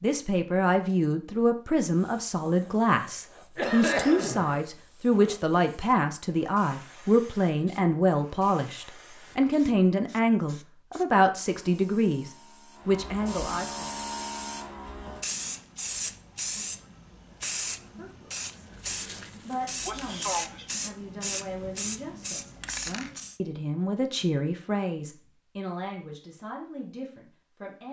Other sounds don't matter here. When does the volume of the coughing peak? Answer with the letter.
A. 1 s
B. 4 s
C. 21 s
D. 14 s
B.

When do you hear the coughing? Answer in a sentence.
The coughing can be heard from 3.5 to 4.7 s and from 19.9 to 20.6 s.